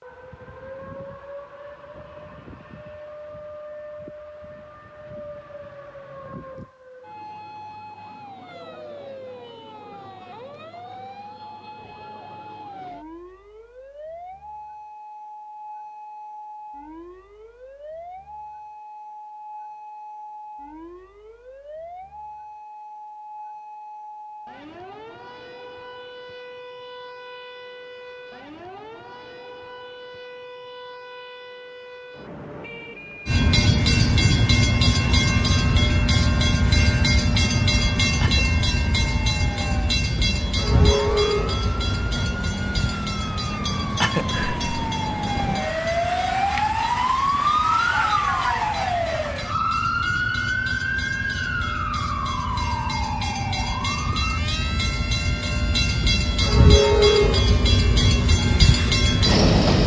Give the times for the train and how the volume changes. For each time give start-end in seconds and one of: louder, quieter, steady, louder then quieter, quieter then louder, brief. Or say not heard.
33.2-59.8 quieter then louder.